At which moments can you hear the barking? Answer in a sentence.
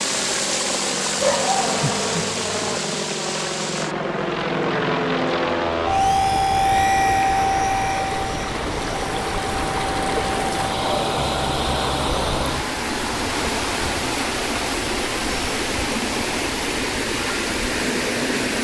The barking can be heard from 1.1 to 2.8 s and from 10.8 to 12.7 s.